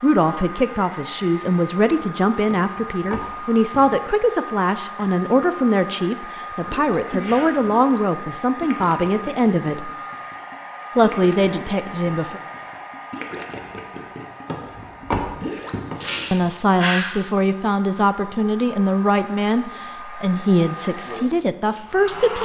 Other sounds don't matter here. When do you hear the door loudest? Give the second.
15 s.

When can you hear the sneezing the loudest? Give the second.
17 s.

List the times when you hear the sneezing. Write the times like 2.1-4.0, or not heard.
6.9-7.5, 15.5-17.1.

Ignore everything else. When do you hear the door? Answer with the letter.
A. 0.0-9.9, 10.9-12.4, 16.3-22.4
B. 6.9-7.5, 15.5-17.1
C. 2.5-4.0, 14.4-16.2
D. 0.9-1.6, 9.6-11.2
C.